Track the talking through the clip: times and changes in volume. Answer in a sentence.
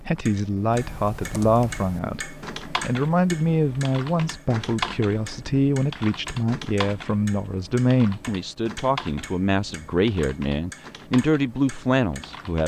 The talking can be heard from 0.0 to 12.6 s, at a steady volume.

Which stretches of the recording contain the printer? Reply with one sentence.
The printer can't be heard in this clip.